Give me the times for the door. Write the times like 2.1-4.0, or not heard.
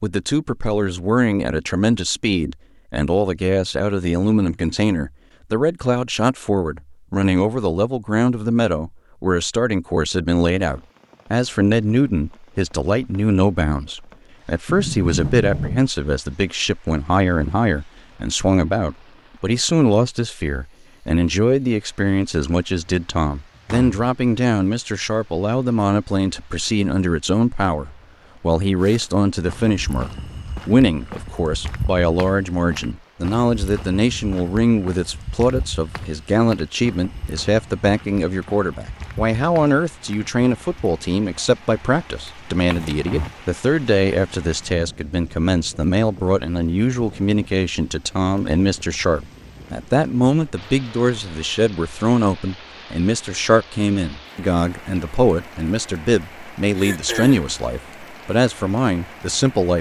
14.7-15.8, 22.9-23.9, 42.7-43.4.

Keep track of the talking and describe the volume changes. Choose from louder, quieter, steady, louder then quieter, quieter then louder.
steady.